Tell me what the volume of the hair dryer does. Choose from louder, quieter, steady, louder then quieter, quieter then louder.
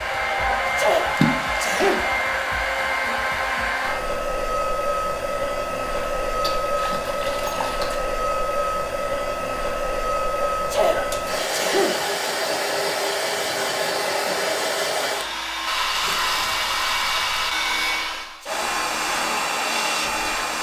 steady.